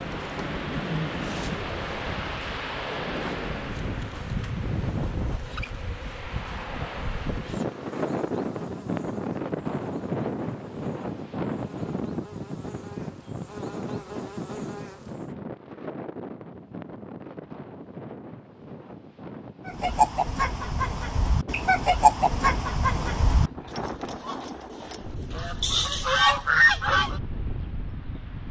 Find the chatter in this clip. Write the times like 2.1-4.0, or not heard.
not heard.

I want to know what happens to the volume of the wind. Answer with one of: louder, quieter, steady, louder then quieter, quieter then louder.
quieter.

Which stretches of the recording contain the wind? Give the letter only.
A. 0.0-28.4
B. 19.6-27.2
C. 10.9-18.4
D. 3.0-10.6
A.